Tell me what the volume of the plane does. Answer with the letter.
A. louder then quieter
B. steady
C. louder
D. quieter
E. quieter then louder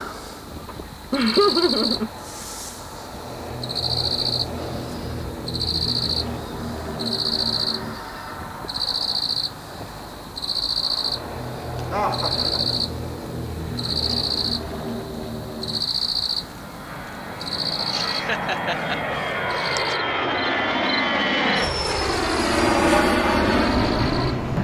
C.